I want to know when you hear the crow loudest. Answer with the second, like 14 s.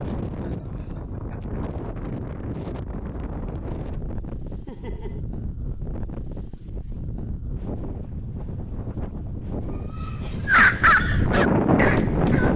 11 s.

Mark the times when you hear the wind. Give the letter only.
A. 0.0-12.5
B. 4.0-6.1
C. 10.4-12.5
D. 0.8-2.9
A.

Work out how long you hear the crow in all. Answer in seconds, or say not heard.
2 s.